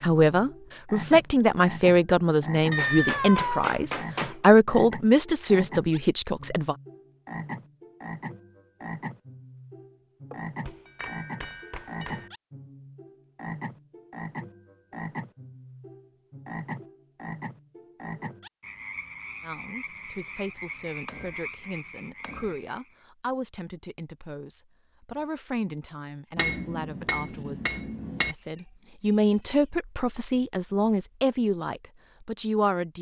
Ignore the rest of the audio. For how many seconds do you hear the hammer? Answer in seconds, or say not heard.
7 s.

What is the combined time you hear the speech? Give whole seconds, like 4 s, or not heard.
20 s.